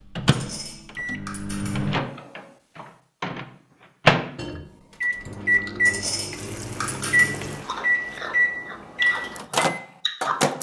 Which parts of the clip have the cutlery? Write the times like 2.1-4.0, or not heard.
0.3-1.9, 5.8-7.5.